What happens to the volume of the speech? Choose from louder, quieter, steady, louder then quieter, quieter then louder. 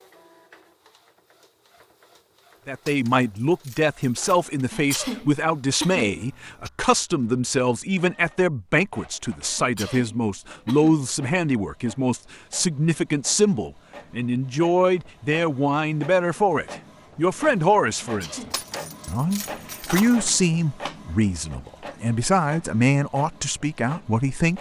steady.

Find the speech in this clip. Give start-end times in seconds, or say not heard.
2.6-24.5.